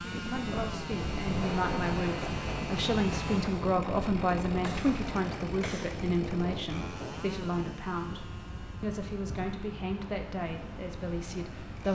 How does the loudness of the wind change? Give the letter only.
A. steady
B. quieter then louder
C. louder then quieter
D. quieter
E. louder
D.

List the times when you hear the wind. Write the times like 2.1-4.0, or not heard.
0.0-11.9.